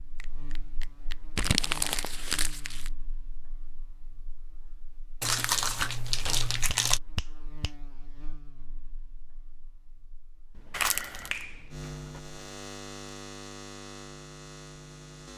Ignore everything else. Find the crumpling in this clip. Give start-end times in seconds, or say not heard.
1.4-2.9, 5.2-7.0, 10.7-11.4.